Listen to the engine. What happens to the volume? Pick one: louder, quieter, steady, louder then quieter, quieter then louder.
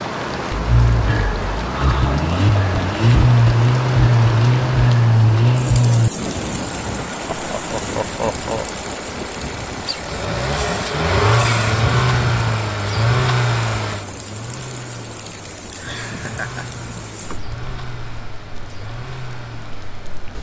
quieter.